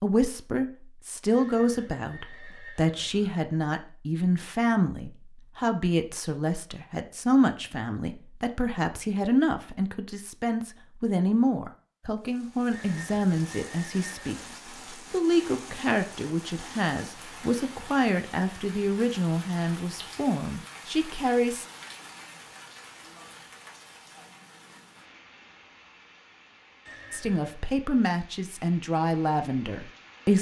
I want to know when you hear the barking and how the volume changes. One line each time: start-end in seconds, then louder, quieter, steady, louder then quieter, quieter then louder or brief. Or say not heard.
not heard.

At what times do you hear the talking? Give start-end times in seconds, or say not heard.
0.0-14.4, 15.1-21.6, 27.1-30.3.